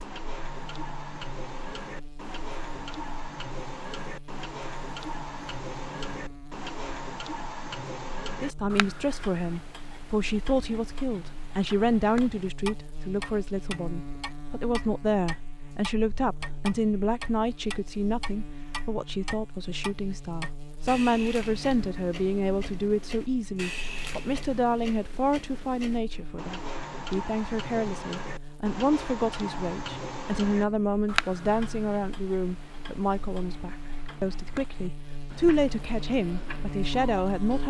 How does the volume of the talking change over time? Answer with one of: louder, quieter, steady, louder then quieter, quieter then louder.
steady.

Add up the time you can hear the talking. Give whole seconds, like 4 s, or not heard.
29 s.